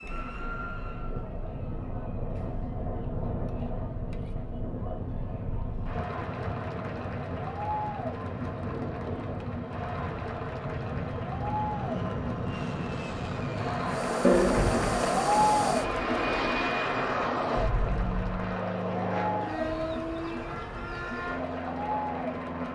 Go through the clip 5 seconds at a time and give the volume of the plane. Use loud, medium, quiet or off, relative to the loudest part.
medium, medium, loud, loud, medium.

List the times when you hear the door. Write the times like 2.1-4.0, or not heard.
14.2-15.1.